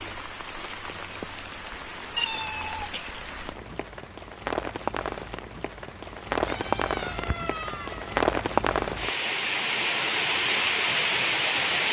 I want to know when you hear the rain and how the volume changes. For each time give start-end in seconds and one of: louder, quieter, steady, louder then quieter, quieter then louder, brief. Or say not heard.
0.0-11.8 louder.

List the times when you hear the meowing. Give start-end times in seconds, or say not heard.
2.1-3.2, 6.4-8.1.